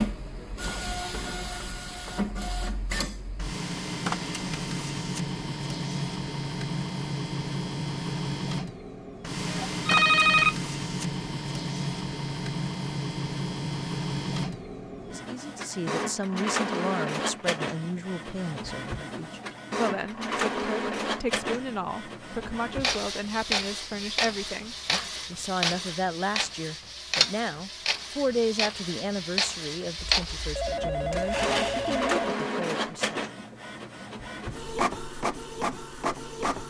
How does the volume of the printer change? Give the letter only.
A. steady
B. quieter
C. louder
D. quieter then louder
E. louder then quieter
A.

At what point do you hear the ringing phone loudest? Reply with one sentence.
The volume of the ringing phone peaks at 10 seconds.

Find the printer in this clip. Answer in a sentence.
You can hear the printer from 0.0 to 36.6 s.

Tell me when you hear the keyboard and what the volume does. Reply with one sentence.
The keyboard can't be heard in this clip.